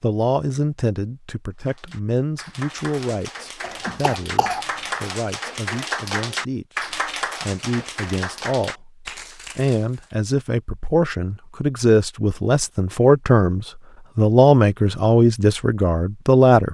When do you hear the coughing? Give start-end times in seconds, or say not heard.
3.6-5.0.